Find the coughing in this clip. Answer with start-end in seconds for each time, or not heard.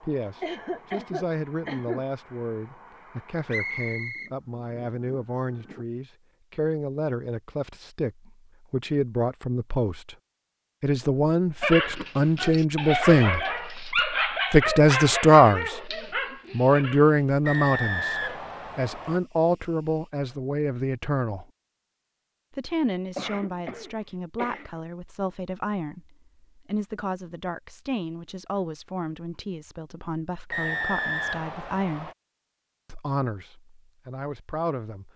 0.4-2.0, 23.1-24.7.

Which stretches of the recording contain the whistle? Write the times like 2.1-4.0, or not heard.
3.5-4.3, 17.4-19.2, 30.5-32.1.